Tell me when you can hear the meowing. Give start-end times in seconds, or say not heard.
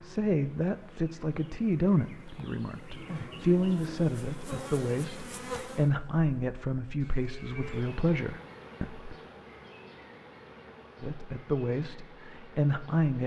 not heard.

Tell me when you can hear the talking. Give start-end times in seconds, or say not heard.
0.0-9.2, 11.0-13.2.